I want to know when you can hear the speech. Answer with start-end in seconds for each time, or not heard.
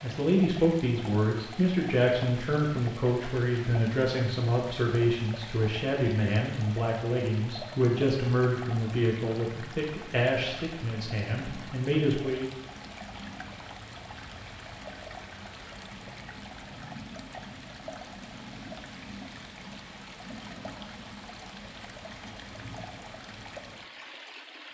0.0-12.4.